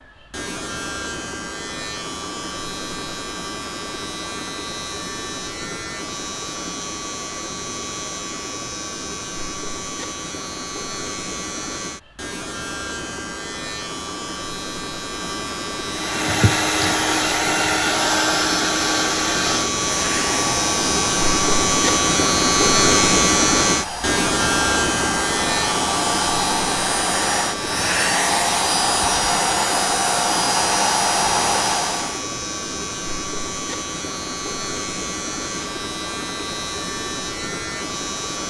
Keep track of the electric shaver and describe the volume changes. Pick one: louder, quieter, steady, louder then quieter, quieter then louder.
louder then quieter.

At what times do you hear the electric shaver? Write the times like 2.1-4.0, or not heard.
0.0-38.4.